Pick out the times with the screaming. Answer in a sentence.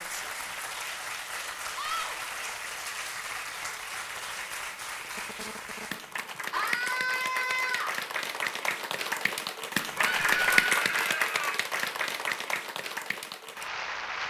You can hear the screaming from 1.8 to 2.2 s, from 6.5 to 8.0 s and from 9.9 to 11.6 s.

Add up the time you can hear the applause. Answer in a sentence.
You can hear the applause for 14 seconds altogether.